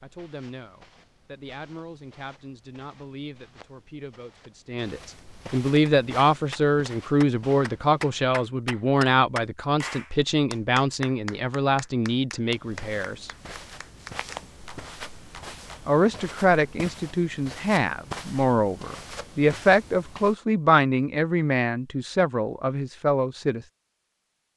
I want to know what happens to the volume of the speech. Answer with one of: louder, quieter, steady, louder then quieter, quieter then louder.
louder.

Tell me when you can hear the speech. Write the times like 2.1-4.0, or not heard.
0.0-13.3, 15.8-23.6.